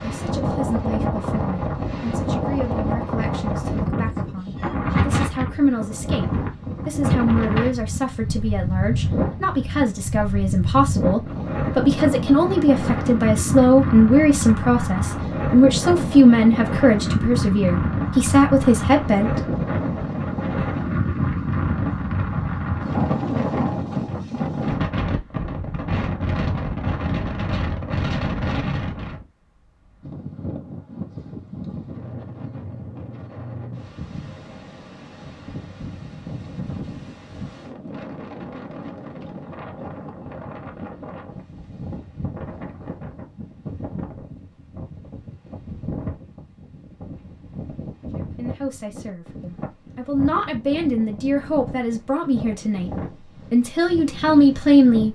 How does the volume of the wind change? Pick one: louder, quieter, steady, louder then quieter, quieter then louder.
quieter.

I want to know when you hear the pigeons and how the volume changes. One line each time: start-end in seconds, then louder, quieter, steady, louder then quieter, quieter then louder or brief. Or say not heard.
not heard.